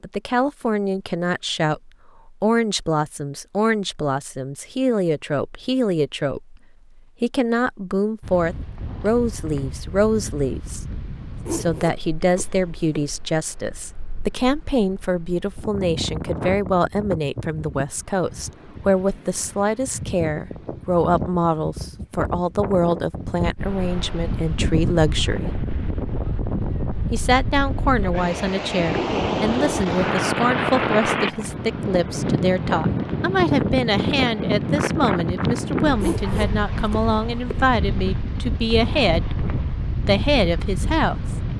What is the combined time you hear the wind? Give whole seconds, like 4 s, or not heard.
33 s.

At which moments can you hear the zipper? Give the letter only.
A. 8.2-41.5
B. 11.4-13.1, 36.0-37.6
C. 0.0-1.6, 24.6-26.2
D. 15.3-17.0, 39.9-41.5
B.